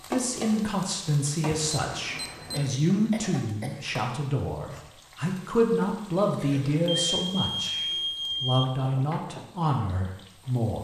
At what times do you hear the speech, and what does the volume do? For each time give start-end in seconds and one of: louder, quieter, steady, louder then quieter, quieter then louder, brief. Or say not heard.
0.1-10.7 steady.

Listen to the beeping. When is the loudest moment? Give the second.
8 s.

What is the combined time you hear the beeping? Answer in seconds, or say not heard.
3 s.